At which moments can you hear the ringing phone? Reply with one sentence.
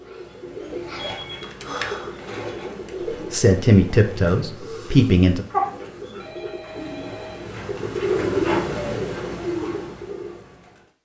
You can hear the ringing phone from 0.9 to 1.5 s and from 6.2 to 7.5 s.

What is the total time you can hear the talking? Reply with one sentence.
You can hear the talking for 2 seconds altogether.